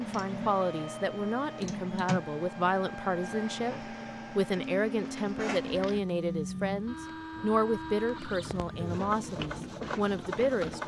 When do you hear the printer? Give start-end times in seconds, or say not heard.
0.0-10.8.